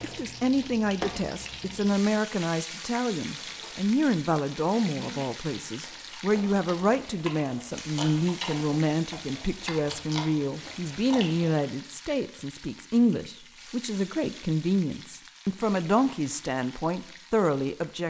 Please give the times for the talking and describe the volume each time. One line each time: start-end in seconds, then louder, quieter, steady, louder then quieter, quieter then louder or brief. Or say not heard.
0.0-18.0 steady.